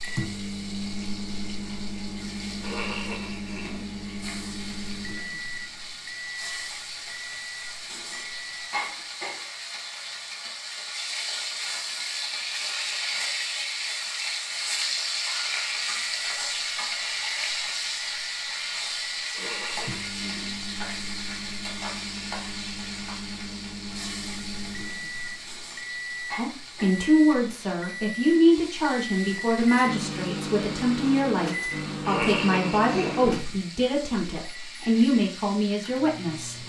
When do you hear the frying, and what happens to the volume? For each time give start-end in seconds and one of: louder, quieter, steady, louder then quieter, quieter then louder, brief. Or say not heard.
0.0-36.6 louder then quieter.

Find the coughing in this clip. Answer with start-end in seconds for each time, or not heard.
2.6-3.9, 19.3-20.6, 32.0-33.2.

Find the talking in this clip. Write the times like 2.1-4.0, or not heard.
26.4-36.5.